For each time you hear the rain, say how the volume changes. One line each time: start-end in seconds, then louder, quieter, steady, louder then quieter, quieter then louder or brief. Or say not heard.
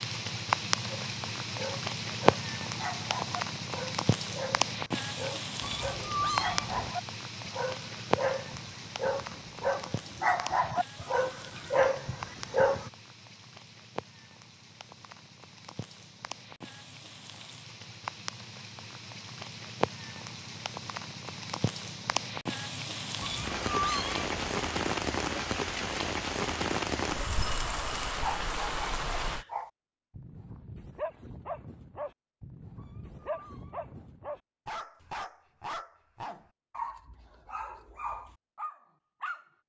0.0-29.4 quieter then louder.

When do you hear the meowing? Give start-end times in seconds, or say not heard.
5.6-7.0, 23.2-24.5, 32.8-34.1.